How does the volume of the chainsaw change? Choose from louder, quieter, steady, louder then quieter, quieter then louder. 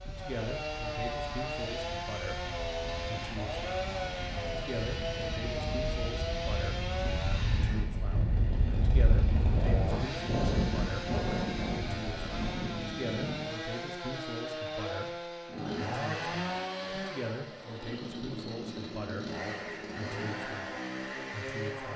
steady.